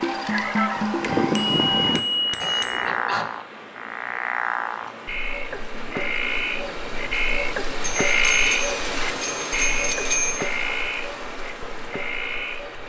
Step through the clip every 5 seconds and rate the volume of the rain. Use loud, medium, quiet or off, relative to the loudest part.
medium, loud, loud.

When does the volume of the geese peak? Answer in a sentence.
The loudest moment of the geese is at 1 second.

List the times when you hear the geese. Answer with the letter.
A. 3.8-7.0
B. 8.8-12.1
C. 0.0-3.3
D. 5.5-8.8
C.